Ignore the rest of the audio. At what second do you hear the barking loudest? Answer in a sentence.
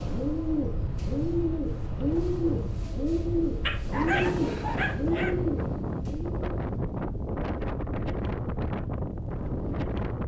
The loudest moment of the barking is at 4 seconds.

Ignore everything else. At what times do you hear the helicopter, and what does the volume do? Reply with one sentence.
The helicopter can't be heard in this clip.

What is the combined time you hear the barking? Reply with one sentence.
You can hear the barking for 2 seconds altogether.